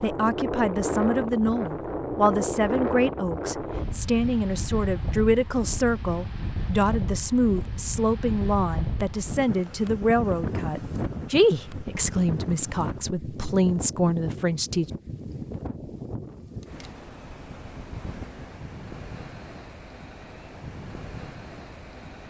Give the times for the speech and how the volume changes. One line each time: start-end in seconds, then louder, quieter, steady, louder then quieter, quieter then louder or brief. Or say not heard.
0.0-14.9 steady.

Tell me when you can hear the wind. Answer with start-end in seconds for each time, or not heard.
0.0-22.2.